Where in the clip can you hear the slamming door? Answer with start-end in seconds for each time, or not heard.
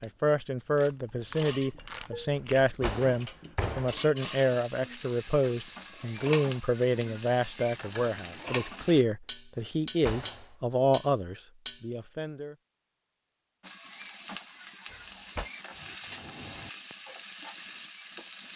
2.4-4.0, 9.6-10.4, 14.9-15.5.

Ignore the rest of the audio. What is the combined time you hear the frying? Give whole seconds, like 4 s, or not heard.
10 s.